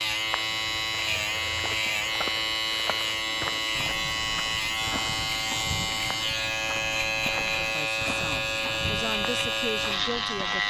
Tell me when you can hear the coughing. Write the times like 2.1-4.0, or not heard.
not heard.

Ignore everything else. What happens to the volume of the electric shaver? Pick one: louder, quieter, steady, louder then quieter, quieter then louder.
steady.